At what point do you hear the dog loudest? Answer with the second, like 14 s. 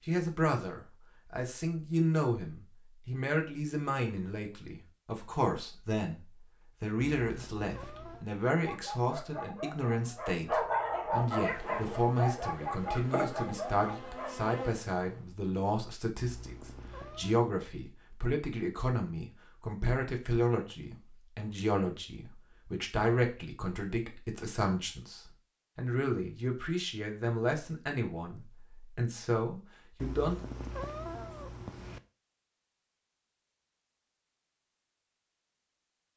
11 s.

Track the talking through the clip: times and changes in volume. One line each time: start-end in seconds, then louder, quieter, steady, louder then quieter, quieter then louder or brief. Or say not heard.
0.1-30.4 steady.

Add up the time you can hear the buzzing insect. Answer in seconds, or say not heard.
4 s.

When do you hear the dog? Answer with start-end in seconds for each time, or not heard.
8.6-14.3.